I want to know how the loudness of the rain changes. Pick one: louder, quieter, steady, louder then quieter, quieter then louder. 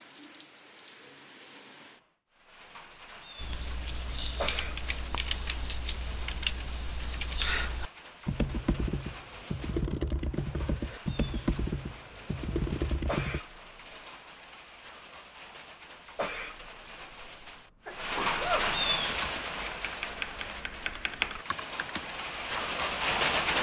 louder.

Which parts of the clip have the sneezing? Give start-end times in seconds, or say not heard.
4.3-4.9, 13.1-13.9, 16.1-18.7.